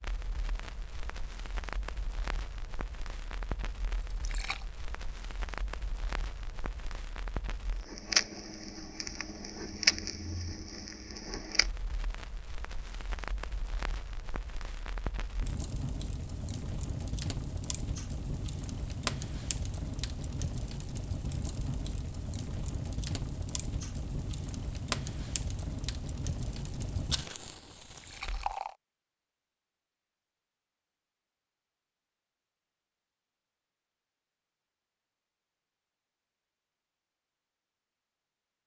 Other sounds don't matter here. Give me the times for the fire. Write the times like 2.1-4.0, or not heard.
0.0-28.6.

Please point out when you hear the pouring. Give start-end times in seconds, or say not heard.
4.0-4.7, 27.9-28.8.